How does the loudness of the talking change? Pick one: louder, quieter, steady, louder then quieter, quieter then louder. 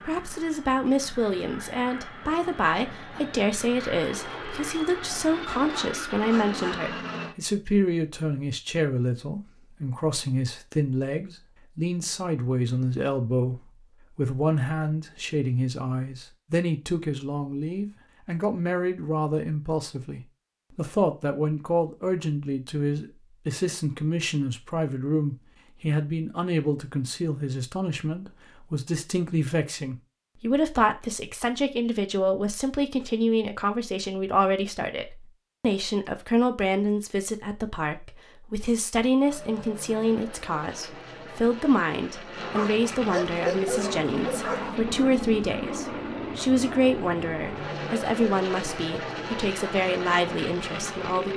steady.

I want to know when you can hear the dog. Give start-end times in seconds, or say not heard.
5.5-6.8, 42.5-44.8.